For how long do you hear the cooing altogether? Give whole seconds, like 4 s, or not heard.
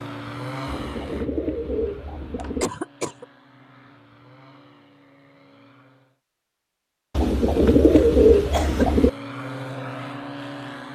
4 s.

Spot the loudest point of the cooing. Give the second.
8 s.